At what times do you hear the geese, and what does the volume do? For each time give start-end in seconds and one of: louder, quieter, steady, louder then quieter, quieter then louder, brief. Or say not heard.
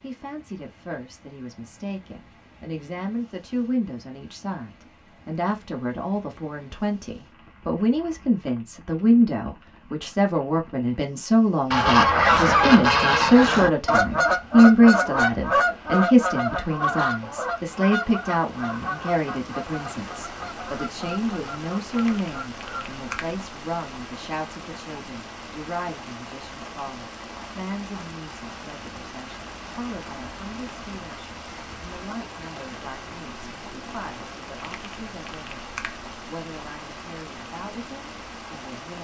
11.7-23.0 quieter.